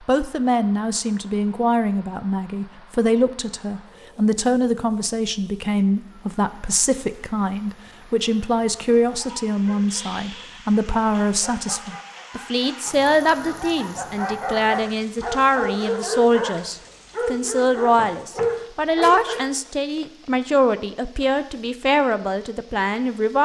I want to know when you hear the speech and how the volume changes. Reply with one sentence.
You can hear the speech from 0.1 to 23.4 s, at a steady volume.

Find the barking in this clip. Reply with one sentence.
You can hear the barking from 9.2 to 19.4 s.